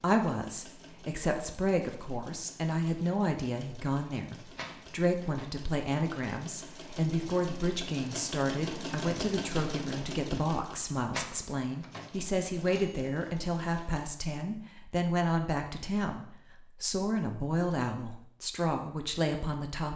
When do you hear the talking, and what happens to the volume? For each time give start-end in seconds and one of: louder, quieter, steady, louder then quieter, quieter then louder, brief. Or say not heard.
0.0-19.9 steady.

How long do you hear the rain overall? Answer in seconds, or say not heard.
not heard.